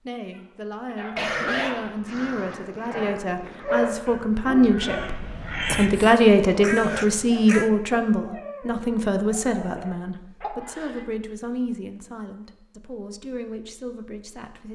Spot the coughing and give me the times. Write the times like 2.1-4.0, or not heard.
1.1-2.2, 5.7-6.1, 10.4-11.0.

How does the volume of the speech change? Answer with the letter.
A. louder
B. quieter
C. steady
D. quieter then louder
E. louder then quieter
E.